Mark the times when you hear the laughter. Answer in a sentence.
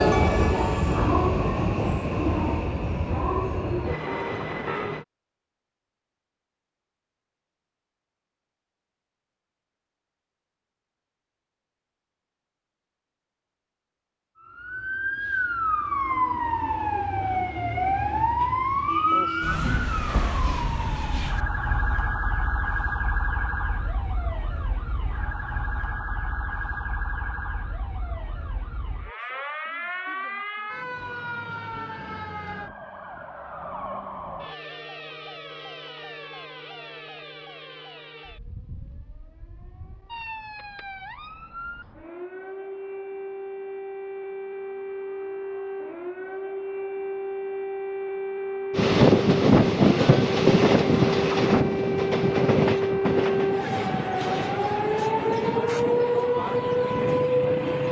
You can't hear the laughter here.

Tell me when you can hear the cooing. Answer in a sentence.
You can't hear the cooing here.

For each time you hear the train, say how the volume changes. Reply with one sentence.
You can hear the train from 0.0 to 5.0 s, getting quieter; and from 48.7 to 57.8 s, getting quieter.